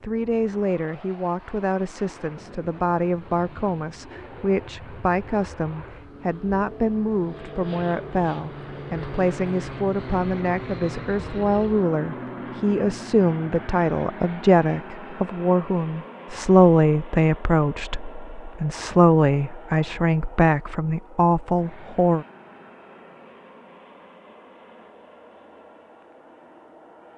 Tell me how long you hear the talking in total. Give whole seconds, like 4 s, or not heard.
22 s.